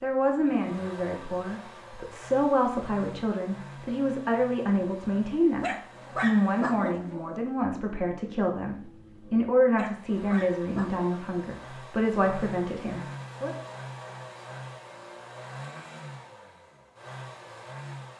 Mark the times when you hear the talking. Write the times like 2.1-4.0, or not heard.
0.0-13.5.